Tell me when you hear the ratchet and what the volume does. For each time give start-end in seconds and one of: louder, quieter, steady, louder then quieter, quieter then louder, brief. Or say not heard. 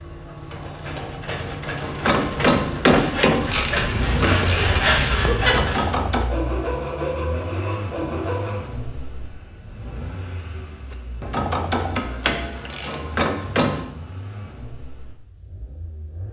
1.8-6.2 quieter
10.9-13.8 brief.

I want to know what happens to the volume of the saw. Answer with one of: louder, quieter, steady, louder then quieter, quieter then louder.
louder then quieter.